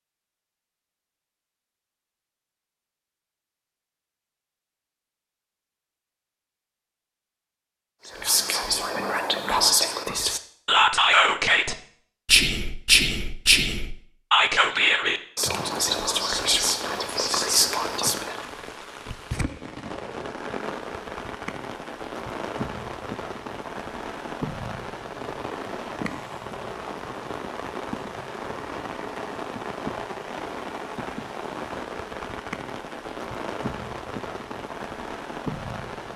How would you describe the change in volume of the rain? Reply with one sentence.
The volume of the rain stays about the same.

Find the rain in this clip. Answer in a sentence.
You can hear the rain from 15.5 to 36.1 s.